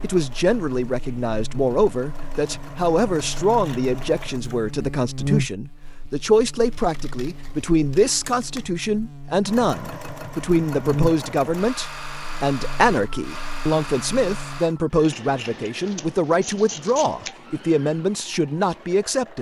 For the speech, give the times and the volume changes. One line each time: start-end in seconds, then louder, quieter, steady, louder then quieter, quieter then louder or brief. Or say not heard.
0.0-19.3 steady.